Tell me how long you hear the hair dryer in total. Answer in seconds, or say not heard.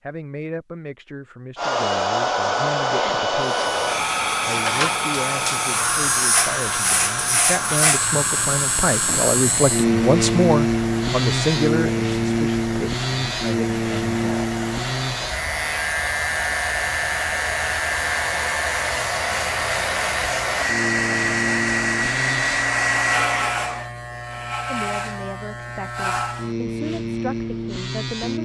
22 s.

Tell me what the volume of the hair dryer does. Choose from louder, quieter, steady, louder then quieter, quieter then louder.
quieter then louder.